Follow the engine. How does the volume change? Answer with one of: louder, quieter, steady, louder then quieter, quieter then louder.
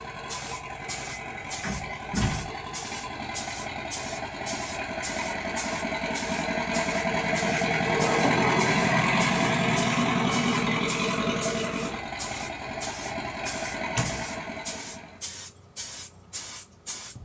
louder then quieter.